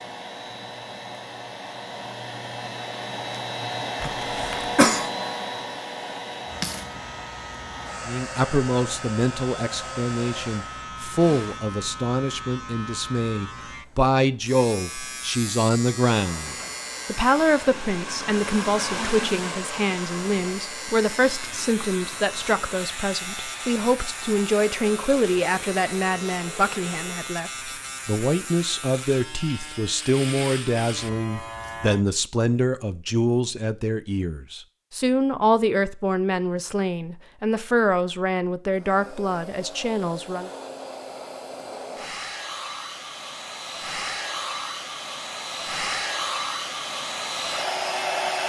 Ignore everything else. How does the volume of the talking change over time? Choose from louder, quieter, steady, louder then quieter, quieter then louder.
steady.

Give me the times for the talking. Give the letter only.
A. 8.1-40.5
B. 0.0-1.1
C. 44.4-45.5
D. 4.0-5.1
A.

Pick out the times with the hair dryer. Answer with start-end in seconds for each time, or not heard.
0.0-11.7, 16.2-27.3, 38.7-48.4.